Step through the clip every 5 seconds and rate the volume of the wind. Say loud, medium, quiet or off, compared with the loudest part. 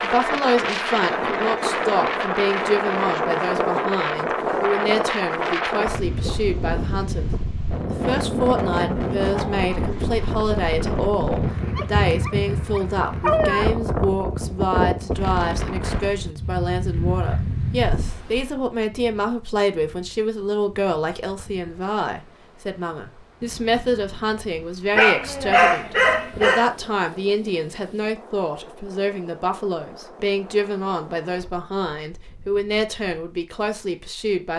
loud, loud, loud, medium, quiet, quiet, quiet.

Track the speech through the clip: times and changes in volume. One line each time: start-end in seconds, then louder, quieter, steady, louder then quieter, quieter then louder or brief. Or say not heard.
0.0-34.5 steady.